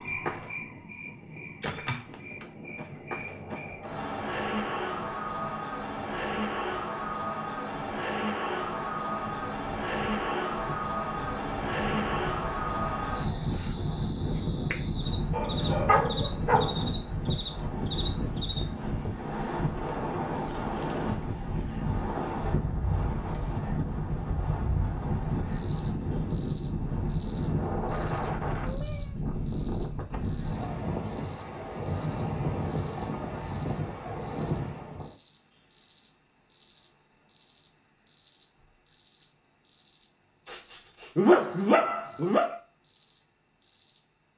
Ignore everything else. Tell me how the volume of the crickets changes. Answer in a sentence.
The volume of the crickets goes down.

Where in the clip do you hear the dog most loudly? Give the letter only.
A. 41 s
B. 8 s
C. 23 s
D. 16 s
A.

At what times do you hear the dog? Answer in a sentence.
The dog can be heard from 15.3 to 16.8 s and from 40.5 to 42.5 s.